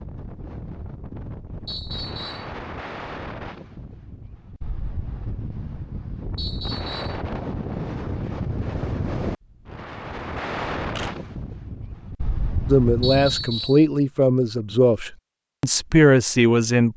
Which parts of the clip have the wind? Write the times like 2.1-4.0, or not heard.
0.0-13.6.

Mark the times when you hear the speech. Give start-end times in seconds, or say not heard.
12.7-16.9.